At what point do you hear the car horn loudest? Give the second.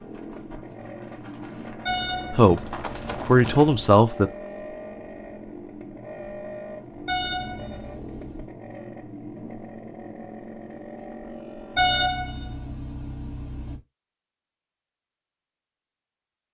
12 s.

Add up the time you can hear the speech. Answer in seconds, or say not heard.
2 s.